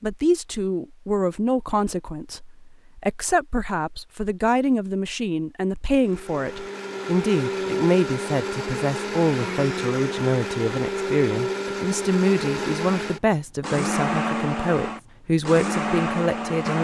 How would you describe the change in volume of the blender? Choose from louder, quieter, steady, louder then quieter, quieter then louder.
steady.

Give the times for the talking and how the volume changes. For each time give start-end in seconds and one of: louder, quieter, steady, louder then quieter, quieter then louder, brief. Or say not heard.
0.0-16.8 steady.